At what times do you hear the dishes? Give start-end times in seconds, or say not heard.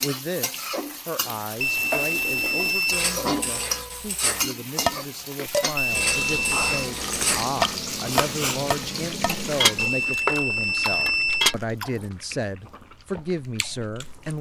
1.7-11.6.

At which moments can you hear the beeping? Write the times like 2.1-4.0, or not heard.
1.6-3.1, 5.8-6.9, 9.8-11.6.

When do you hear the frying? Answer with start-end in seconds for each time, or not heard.
0.0-10.2.